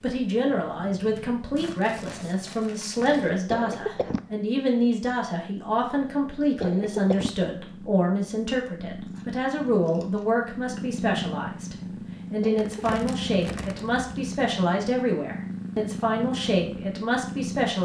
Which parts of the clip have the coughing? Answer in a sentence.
You can hear the coughing from 3.5 to 4.2 s, from 6.6 to 7.3 s and from 12.4 to 13.0 s.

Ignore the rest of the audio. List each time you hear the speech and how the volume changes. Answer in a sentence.
The speech can be heard from 0.0 to 17.7 s, at a steady volume.